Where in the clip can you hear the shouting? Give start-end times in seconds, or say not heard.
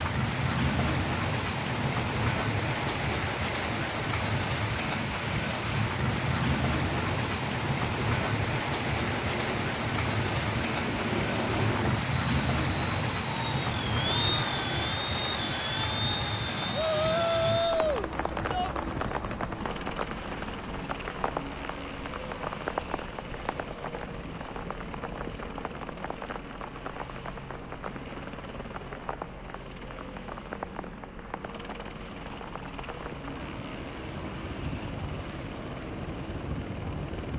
16.7-18.7.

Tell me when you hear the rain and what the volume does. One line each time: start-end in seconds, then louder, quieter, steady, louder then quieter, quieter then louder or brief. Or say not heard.
0.0-37.3 quieter.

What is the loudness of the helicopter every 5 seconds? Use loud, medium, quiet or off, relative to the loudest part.
medium, medium, loud, loud, medium, medium, medium, medium.